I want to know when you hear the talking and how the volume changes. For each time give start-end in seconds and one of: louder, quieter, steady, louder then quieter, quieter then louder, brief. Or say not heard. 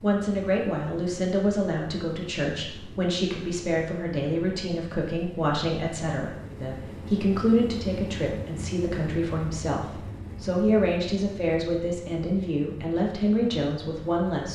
0.0-14.5 steady.